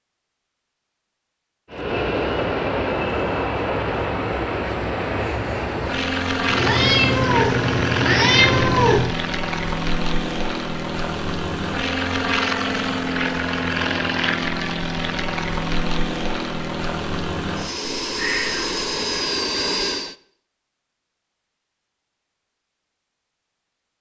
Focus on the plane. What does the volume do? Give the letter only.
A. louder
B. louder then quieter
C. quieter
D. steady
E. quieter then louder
D.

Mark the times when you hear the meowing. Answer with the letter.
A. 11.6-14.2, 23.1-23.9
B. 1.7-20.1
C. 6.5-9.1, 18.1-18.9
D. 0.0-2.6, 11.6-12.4
C.